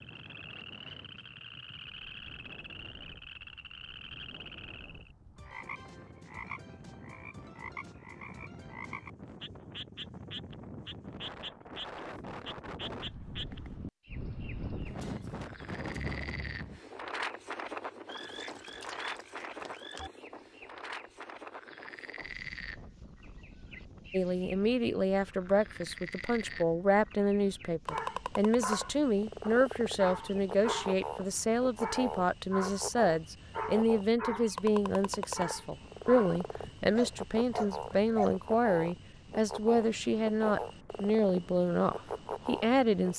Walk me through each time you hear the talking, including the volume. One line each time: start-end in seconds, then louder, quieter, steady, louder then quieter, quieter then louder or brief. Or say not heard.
24.1-43.1 steady.